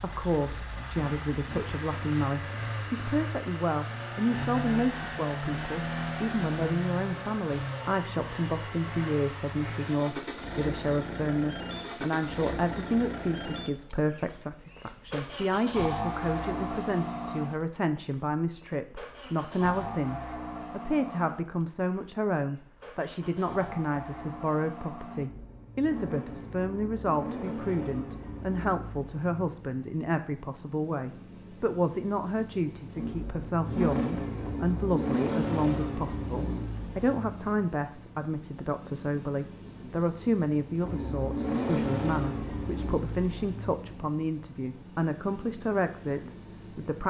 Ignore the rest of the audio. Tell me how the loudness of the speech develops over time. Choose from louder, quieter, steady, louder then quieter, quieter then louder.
steady.